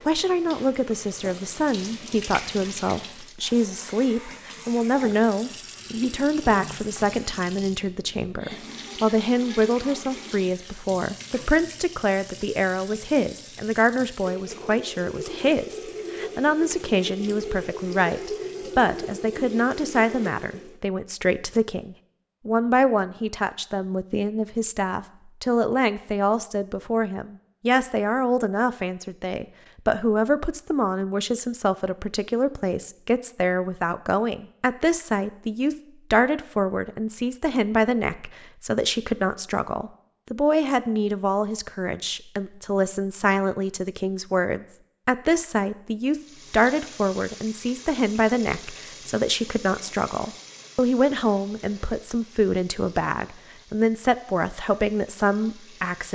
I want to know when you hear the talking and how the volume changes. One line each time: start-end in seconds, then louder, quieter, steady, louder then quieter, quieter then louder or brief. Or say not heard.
0.1-56.0 steady.